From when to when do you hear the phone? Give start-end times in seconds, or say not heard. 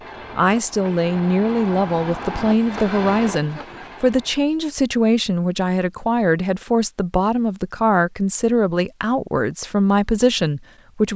not heard.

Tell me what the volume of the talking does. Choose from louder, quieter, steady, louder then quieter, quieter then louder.
steady.